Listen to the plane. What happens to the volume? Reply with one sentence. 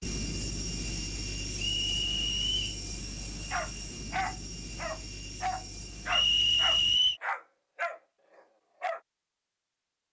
The loudness of the plane goes down.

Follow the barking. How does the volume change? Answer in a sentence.
The volume of the barking stays about the same.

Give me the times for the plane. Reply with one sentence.
The plane can be heard from 0.0 to 7.0 s.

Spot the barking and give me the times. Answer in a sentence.
The barking can be heard from 3.5 to 9.0 s.